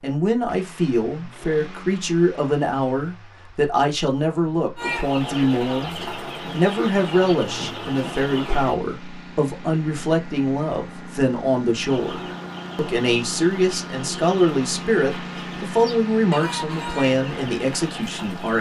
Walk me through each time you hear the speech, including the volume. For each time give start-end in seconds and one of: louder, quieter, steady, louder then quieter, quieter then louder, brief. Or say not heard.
0.0-18.5 steady.